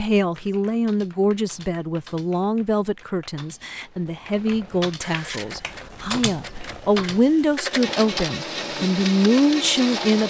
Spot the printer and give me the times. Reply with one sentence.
The printer can be heard from 5.0 to 10.2 s.